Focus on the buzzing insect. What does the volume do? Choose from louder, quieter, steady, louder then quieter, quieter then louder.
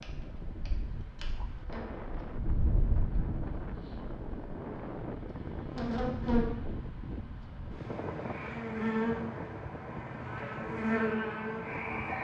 louder.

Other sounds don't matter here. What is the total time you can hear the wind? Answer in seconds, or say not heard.
12 s.